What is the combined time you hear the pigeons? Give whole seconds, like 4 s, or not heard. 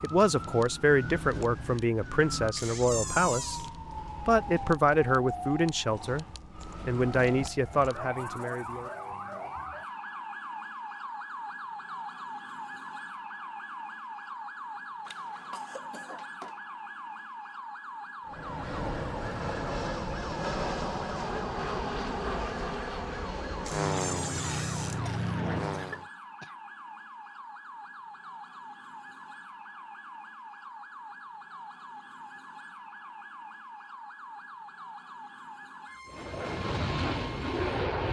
not heard.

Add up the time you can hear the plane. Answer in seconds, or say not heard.
10 s.